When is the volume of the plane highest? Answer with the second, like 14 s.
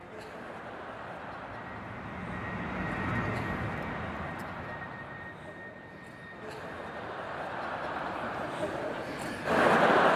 3 s.